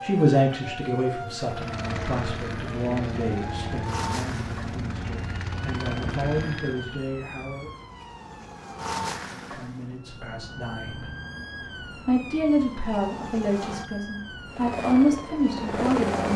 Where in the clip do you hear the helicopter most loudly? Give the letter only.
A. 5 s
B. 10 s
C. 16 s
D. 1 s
C.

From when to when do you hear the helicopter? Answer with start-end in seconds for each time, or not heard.
1.4-7.0, 14.5-16.3.